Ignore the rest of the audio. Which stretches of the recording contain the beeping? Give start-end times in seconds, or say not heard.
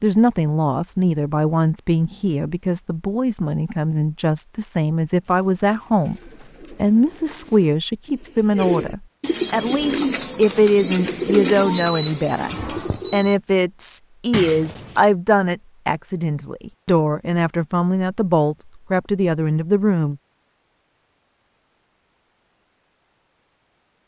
11.8-13.3.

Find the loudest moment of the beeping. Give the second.
12 s.